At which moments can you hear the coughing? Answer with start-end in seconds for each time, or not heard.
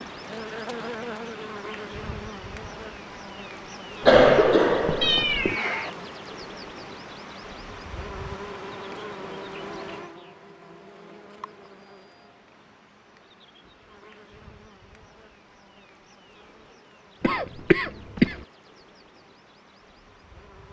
4.0-5.5, 17.2-18.4.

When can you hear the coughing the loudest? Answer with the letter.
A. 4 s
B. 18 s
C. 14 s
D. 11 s
A.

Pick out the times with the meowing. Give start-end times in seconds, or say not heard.
5.0-5.9.